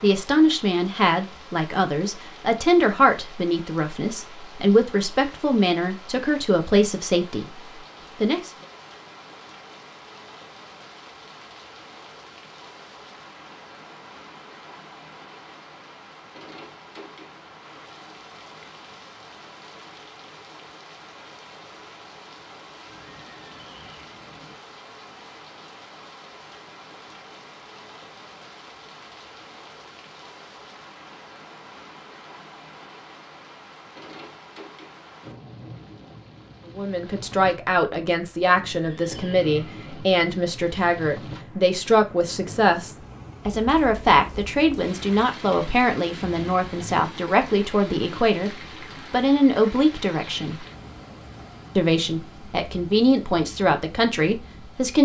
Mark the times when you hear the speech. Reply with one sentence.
You can hear the speech from 0.0 to 8.5 s, from 36.8 to 50.6 s and from 51.8 to 54.9 s.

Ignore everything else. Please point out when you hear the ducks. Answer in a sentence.
You can't hear the ducks here.